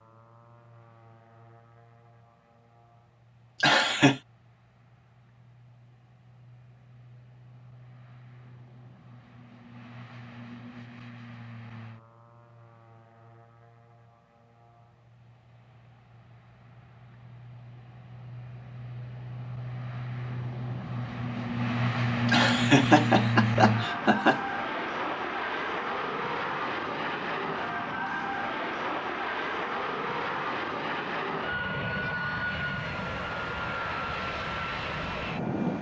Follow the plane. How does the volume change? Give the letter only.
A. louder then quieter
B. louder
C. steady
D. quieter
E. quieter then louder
B.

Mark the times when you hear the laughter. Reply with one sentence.
The laughter can be heard from 3.6 to 4.2 s and from 22.2 to 24.4 s.